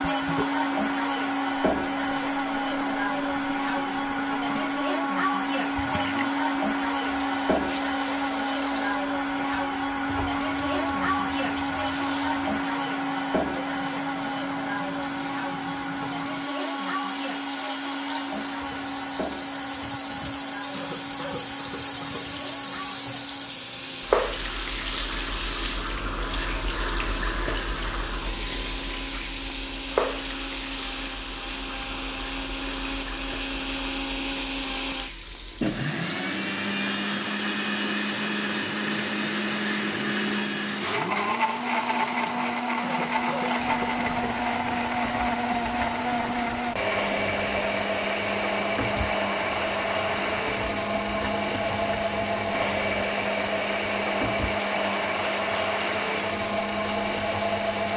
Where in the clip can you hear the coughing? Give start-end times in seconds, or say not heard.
20.7-22.3, 42.8-44.4.